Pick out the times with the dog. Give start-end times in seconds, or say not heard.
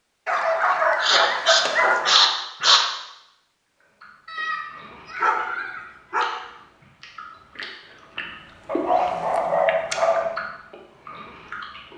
0.2-2.1, 4.2-6.3, 8.7-10.3.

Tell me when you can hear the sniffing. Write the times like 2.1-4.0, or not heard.
0.9-2.9.